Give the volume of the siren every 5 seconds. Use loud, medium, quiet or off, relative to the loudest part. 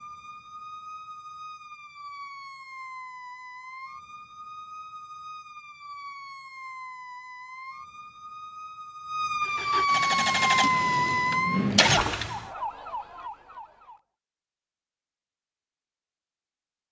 quiet, medium, loud, off.